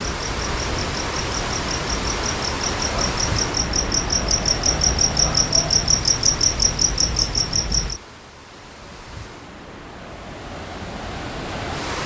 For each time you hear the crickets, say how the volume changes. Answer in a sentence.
You can hear the crickets from 0.0 to 8.0 s, getting louder.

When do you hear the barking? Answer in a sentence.
You can't hear the barking here.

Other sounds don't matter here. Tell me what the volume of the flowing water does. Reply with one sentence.
The loudness of the flowing water goes down, then up.